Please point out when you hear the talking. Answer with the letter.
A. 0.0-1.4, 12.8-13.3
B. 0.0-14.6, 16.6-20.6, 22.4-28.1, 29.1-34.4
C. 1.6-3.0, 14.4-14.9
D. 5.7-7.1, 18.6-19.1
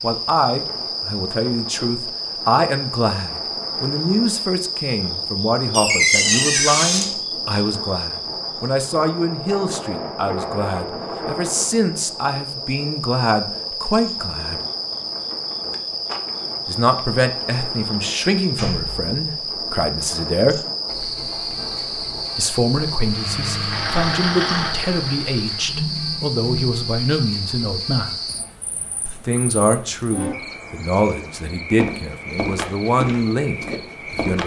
B.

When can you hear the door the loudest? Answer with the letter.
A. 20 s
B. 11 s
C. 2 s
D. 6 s
D.